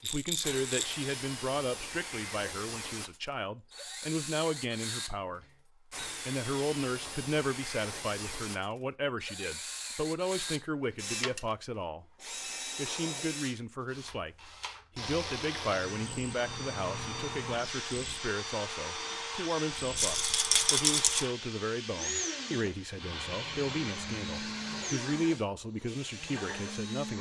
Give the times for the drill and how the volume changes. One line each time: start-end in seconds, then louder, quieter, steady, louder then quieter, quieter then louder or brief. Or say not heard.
0.0-27.1 steady.